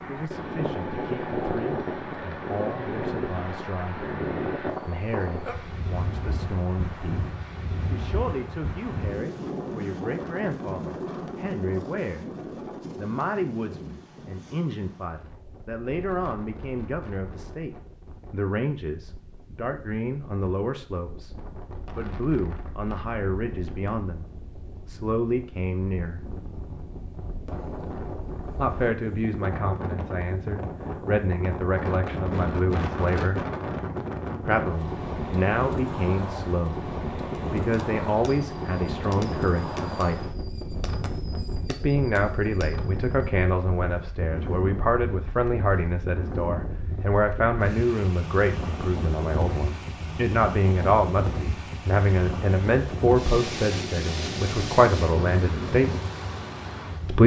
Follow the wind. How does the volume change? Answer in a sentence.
The loudness of the wind goes down, then up.